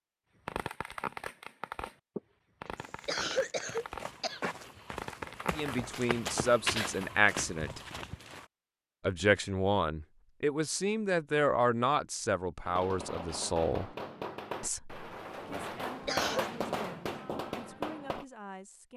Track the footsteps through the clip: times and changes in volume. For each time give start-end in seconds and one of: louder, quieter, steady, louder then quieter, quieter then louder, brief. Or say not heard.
2.8-8.5 louder then quieter.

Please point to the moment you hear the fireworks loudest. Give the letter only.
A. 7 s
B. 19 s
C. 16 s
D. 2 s
C.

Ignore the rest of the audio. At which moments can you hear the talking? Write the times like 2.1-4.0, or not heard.
5.5-7.8, 9.1-13.9, 14.6-18.9.